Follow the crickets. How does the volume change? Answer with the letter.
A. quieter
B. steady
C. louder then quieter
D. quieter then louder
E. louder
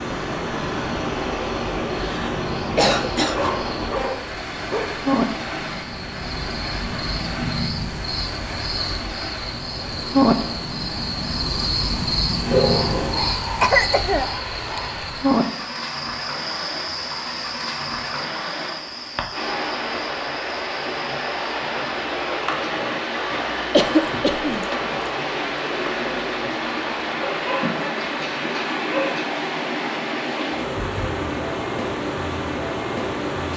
C.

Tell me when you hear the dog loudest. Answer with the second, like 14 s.
13 s.